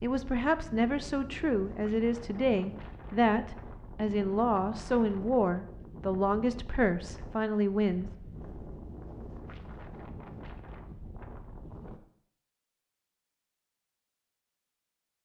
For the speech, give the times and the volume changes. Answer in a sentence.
The speech can be heard from 0.0 to 8.1 s, at a steady volume.